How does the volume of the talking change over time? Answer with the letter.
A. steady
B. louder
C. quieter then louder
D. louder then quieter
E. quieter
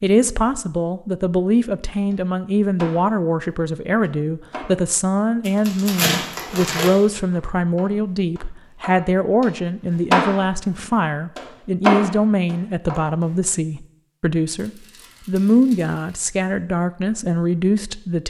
A.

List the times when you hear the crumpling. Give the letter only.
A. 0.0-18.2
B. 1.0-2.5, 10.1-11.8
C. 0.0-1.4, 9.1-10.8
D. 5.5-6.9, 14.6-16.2
D.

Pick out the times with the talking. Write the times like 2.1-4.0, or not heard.
0.0-18.2.